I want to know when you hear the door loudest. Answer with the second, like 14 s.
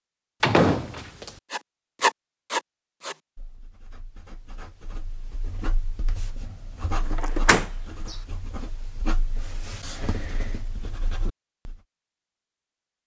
1 s.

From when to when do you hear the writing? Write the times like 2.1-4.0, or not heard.
1.5-11.8.